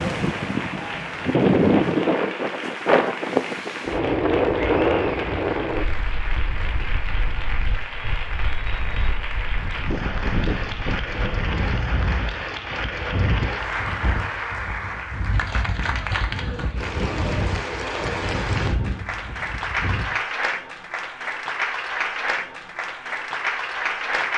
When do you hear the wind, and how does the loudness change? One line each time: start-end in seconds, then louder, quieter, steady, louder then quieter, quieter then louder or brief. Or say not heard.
0.0-20.1 quieter.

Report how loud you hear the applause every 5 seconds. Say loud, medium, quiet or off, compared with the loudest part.
medium, medium, loud, loud, loud.